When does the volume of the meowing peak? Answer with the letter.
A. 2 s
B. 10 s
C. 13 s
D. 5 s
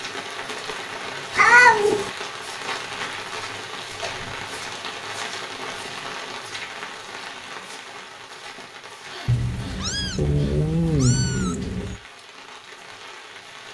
A.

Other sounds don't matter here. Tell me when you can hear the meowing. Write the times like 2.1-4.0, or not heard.
1.4-2.1, 9.2-12.0.